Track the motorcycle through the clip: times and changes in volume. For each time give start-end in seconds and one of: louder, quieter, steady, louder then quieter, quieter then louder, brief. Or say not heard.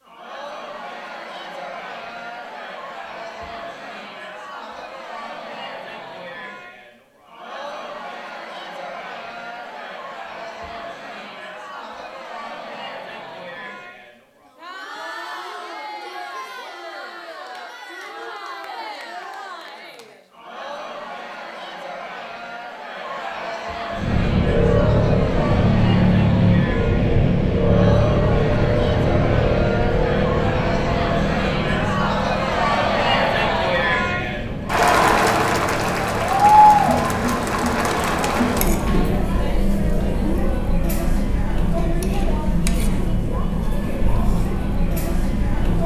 23.9-45.8 quieter.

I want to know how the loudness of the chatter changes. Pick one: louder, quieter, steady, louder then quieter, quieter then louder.
louder.